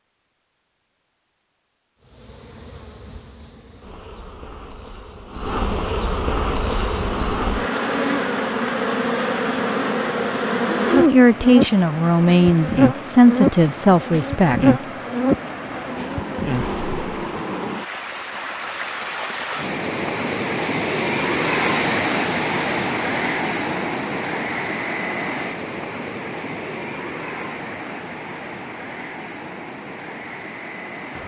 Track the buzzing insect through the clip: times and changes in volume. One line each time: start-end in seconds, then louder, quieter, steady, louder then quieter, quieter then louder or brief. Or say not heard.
2.0-17.3 louder.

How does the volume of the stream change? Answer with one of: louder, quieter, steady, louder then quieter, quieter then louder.
louder then quieter.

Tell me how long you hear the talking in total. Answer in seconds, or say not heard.
4 s.